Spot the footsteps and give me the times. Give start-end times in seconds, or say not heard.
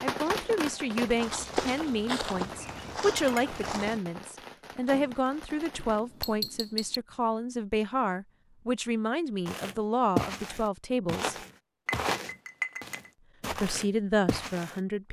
0.1-4.0, 9.4-14.8.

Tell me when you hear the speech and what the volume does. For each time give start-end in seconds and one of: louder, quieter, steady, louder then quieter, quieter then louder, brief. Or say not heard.
0.0-11.3 steady
13.5-15.0 brief.